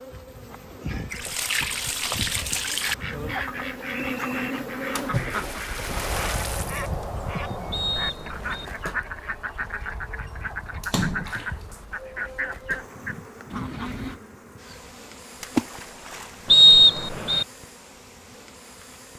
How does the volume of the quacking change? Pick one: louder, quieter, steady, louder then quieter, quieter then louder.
steady.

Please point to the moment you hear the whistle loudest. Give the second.
17 s.